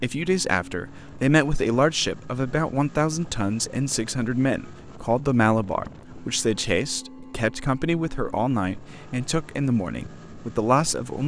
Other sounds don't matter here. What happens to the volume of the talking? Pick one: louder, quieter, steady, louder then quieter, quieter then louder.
steady.